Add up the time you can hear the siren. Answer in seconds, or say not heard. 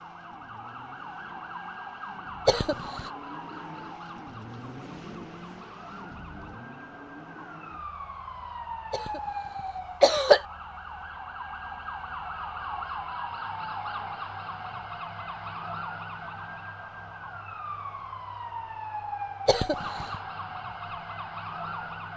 22 s.